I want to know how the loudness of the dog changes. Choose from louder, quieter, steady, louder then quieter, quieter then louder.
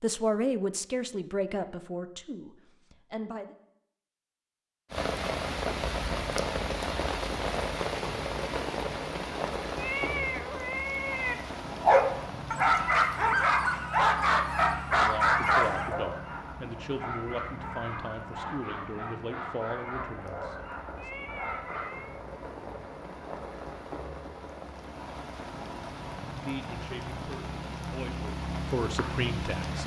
quieter.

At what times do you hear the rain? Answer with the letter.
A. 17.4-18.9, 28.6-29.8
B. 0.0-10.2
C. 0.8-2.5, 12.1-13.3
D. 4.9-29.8
D.